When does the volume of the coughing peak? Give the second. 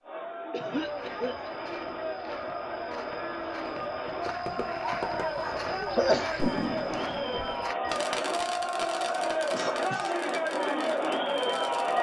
6 s.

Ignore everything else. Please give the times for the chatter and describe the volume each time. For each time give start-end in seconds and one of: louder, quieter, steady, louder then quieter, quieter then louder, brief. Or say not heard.
0.0-11.9 louder.